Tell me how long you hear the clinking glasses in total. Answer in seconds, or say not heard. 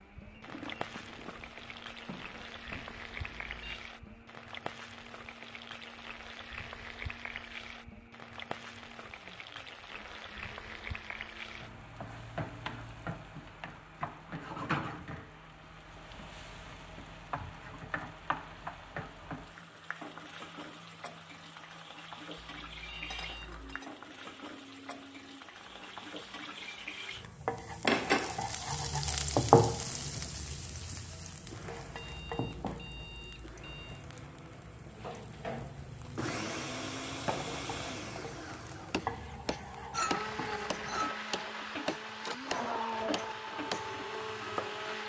5 s.